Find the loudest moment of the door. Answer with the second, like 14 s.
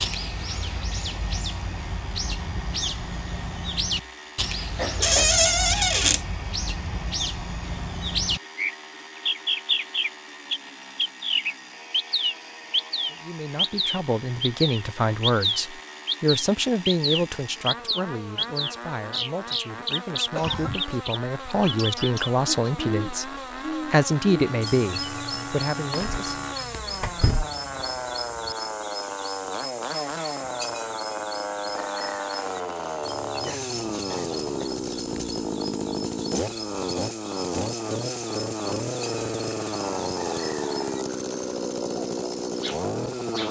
5 s.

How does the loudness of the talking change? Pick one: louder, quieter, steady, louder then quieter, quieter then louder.
quieter then louder.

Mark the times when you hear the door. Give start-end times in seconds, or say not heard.
5.0-6.2, 25.9-27.4.